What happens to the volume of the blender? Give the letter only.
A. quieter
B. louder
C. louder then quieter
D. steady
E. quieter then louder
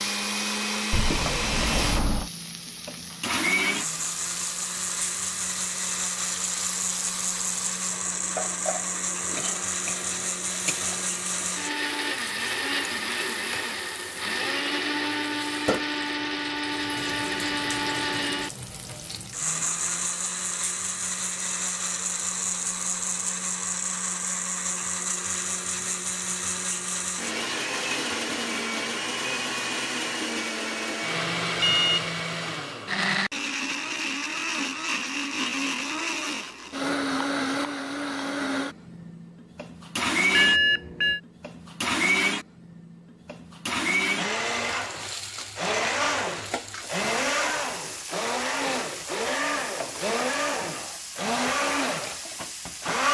D.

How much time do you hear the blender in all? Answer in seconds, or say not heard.
53 s.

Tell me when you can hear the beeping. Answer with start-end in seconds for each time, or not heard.
0.9-2.3, 31.6-32.1, 40.3-41.2.